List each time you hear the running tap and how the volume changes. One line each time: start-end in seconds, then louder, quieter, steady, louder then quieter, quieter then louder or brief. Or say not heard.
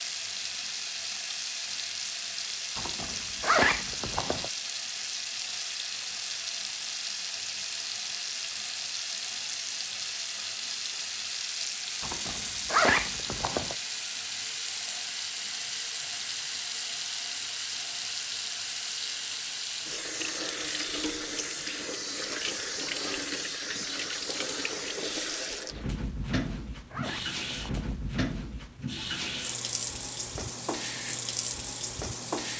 0.0-32.5 steady.